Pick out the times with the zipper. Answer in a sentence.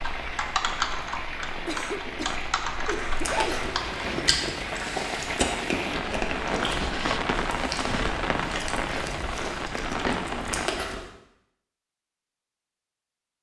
The zipper can be heard from 3.2 to 4.6 s.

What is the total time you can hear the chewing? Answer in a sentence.
You can hear the chewing for 8 seconds altogether.